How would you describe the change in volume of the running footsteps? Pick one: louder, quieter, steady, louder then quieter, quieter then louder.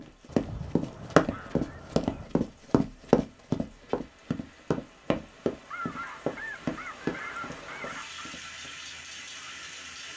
quieter.